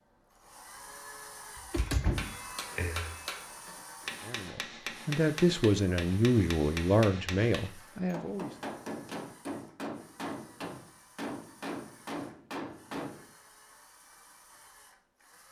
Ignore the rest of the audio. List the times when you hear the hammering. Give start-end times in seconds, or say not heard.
1.8-13.2.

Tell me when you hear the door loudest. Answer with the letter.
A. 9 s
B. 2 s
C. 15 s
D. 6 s
B.